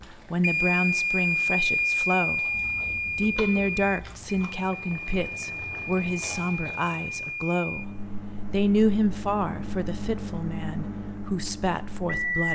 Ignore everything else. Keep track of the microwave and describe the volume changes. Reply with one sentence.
The volume of the microwave goes down.